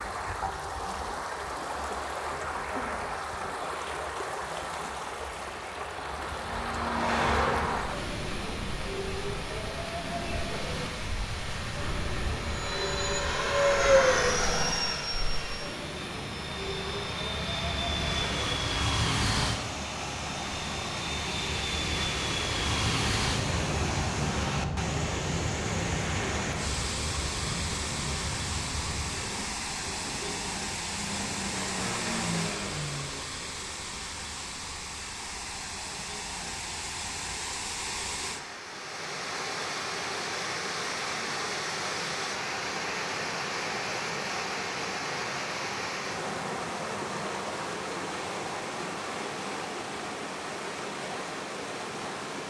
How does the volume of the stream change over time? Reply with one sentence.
The volume of the stream stays about the same.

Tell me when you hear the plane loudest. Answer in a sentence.
The loudest moment of the plane is at 14 seconds.